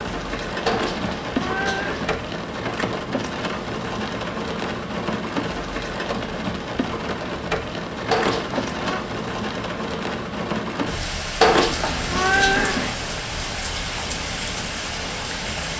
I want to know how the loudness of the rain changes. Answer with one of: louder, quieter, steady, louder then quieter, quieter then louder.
steady.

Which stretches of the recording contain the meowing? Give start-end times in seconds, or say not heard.
0.7-2.1, 8.1-9.0, 11.4-12.9.